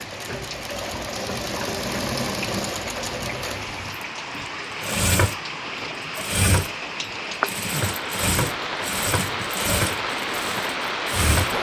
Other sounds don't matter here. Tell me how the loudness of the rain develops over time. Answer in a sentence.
The loudness of the rain goes up.